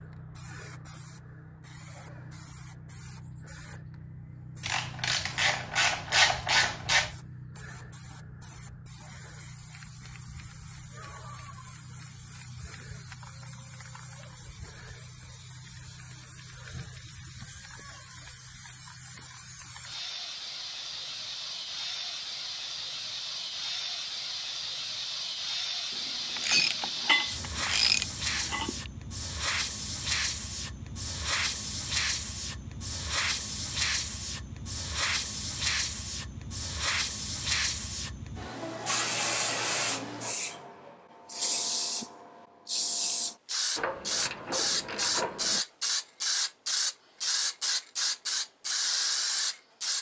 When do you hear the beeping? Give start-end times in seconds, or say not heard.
not heard.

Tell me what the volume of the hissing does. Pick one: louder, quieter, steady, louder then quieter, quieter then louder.
louder.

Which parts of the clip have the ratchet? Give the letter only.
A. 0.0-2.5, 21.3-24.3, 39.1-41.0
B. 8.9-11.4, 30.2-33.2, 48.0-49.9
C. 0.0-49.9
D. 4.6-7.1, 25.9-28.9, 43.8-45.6
D.